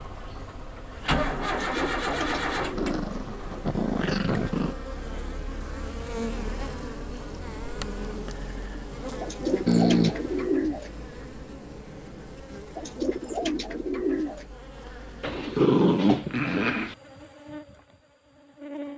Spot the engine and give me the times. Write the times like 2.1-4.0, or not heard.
0.0-3.6.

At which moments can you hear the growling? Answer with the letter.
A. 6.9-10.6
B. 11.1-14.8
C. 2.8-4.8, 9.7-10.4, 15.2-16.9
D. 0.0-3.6
C.